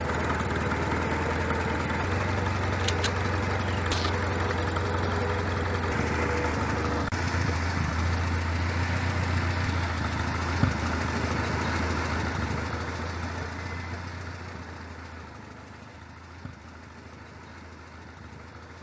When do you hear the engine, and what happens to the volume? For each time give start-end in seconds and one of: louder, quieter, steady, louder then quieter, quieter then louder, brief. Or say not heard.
0.0-18.7 quieter.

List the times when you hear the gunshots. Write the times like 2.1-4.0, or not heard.
2.8-4.1.